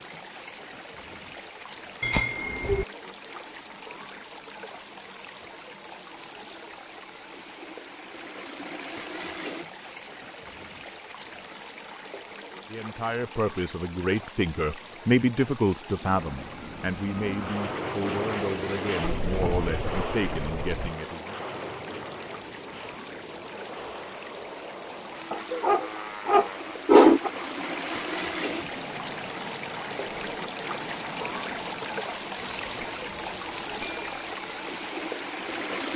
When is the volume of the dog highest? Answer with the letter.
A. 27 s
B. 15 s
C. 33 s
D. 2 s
A.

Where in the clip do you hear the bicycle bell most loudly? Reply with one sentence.
The loudest moment of the bicycle bell is at 2 seconds.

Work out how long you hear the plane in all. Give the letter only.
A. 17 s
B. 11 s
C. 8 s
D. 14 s
A.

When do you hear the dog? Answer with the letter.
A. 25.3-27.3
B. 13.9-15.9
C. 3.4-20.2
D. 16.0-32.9
A.